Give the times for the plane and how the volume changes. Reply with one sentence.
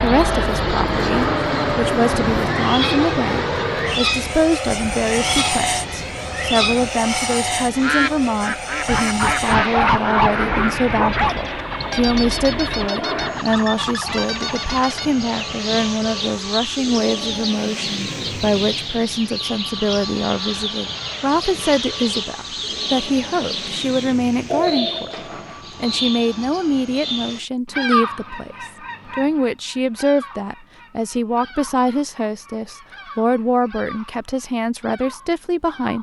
The plane can be heard from 0.0 to 27.4 s, getting quieter.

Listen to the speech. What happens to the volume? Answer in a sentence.
The loudness of the speech stays about the same.